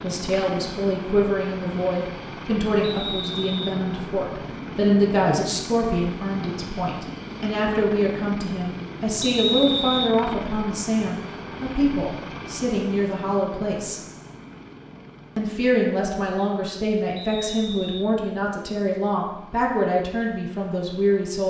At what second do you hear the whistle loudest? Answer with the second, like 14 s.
10 s.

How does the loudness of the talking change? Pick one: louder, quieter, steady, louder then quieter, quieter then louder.
steady.